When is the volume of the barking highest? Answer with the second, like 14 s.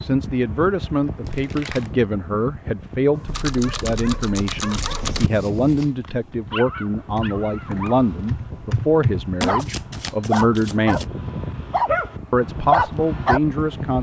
13 s.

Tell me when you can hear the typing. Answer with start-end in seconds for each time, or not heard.
3.2-5.3, 7.2-10.1.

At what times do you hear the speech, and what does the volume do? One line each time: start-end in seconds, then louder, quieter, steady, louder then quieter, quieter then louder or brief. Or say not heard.
0.0-11.1 steady
12.3-13.9 brief.